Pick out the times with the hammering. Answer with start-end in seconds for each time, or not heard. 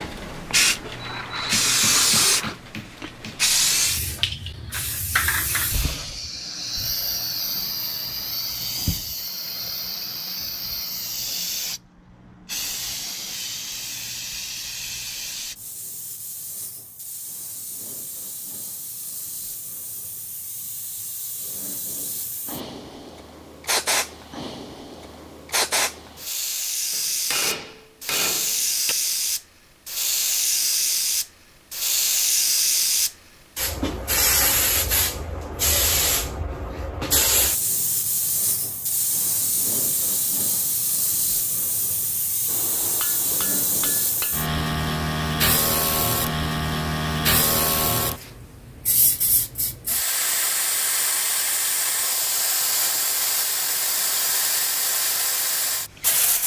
0.8-3.5, 26.9-28.9, 42.5-44.4.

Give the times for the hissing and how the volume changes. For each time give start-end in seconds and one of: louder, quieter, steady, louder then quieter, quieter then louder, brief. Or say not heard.
0.0-56.4 quieter then louder.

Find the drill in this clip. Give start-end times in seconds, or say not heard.
0.0-2.6.